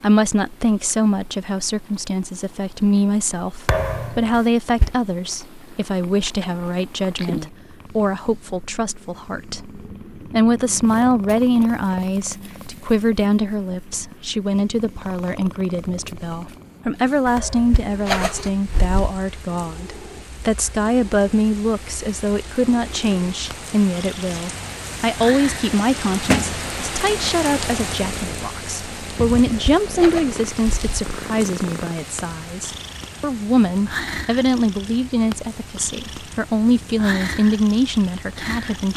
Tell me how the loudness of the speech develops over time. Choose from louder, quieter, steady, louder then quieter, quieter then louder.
steady.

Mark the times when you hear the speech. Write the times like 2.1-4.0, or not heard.
0.0-38.9.